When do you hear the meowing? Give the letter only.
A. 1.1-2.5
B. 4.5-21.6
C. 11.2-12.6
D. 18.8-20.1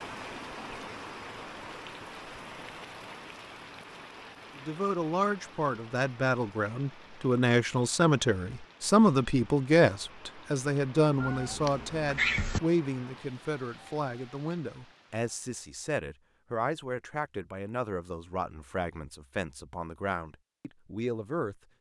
C.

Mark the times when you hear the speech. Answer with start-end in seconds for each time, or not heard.
4.5-21.6.